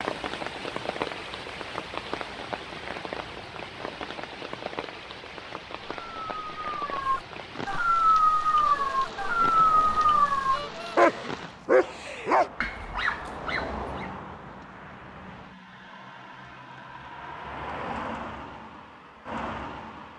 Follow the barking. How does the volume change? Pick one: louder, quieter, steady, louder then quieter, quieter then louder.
quieter.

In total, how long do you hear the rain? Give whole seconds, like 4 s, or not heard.
12 s.